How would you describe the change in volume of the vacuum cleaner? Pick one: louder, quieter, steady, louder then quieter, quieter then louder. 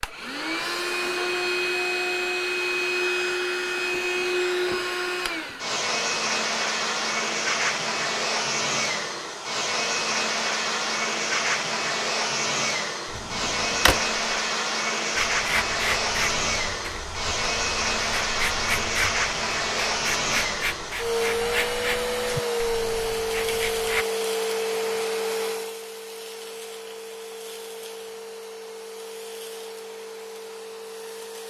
quieter.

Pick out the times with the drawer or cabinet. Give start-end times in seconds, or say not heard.
13.1-14.2.